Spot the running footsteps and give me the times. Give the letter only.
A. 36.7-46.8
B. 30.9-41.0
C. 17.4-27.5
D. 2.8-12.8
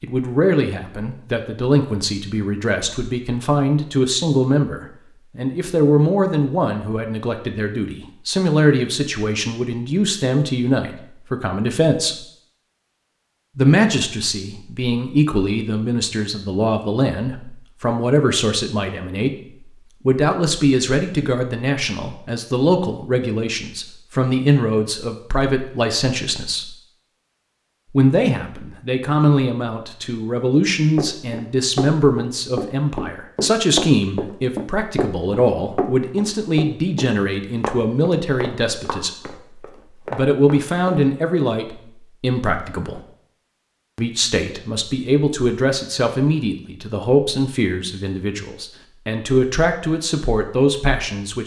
B.